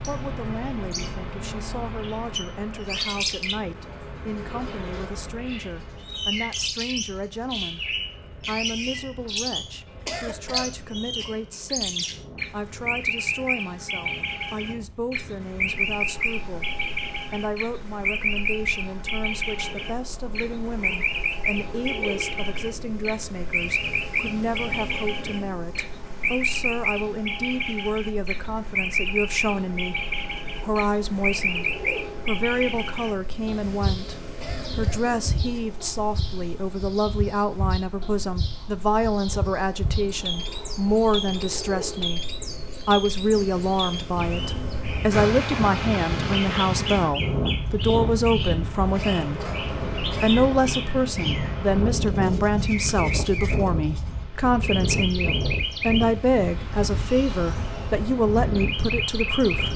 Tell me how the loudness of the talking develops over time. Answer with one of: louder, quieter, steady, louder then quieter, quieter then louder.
louder.